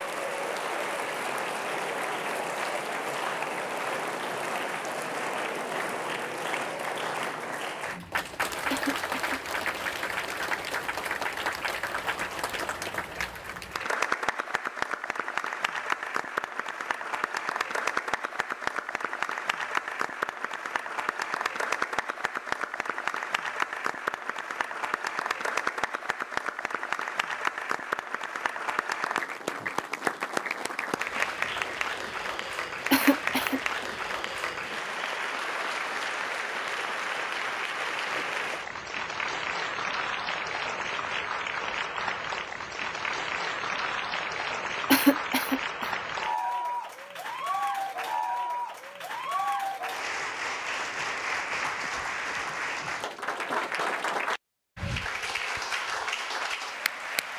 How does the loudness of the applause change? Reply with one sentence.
The loudness of the applause stays about the same.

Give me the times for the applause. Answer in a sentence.
The applause can be heard from 0.0 to 57.3 s.